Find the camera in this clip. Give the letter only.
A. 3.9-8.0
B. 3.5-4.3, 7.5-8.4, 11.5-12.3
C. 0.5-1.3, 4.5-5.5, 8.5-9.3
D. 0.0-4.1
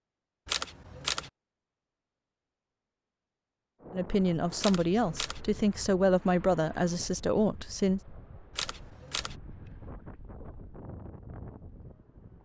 C.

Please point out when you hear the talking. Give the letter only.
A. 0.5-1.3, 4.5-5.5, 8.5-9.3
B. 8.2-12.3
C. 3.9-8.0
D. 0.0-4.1
C.